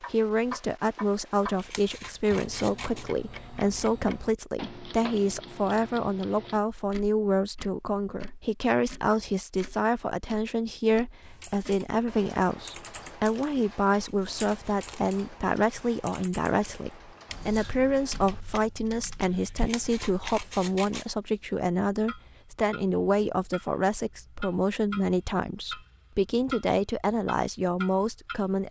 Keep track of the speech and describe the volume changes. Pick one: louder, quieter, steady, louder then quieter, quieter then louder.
steady.